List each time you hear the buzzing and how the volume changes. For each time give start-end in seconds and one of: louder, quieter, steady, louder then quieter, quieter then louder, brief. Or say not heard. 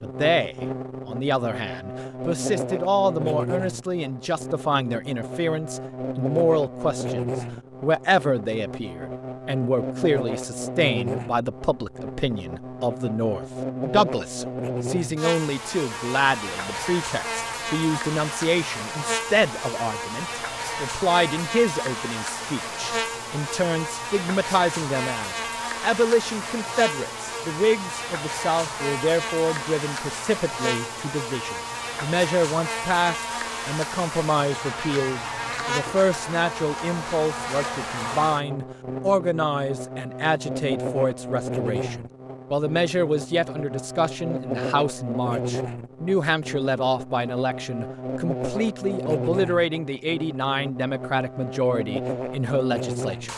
0.0-53.3 steady.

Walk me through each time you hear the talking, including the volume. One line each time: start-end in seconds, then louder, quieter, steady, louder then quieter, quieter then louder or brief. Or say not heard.
0.0-53.3 steady.